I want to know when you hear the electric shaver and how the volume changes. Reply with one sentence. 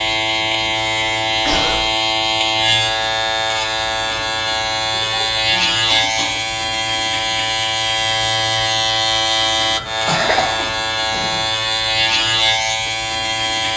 You can hear the electric shaver from 0.0 to 13.7 s, at a steady volume.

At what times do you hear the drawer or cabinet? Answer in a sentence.
The drawer or cabinet can't be heard in this clip.